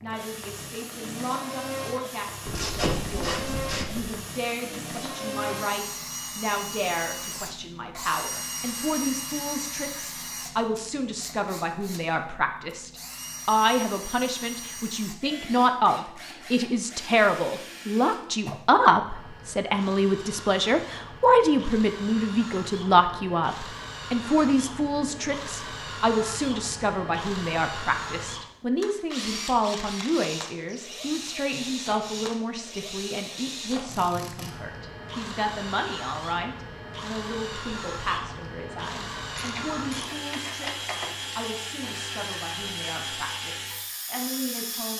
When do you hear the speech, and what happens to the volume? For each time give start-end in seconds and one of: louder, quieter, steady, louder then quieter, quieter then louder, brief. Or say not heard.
0.0-44.9 louder then quieter.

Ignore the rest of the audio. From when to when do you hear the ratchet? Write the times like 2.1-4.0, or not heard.
2.5-4.2, 39.4-41.4.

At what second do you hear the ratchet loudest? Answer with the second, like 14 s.
3 s.